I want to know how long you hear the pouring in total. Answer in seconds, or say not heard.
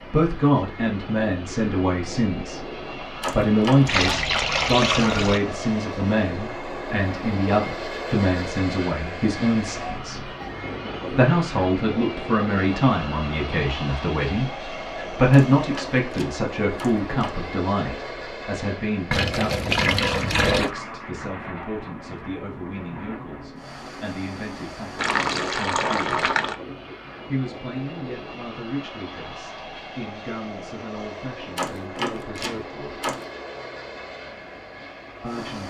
5 s.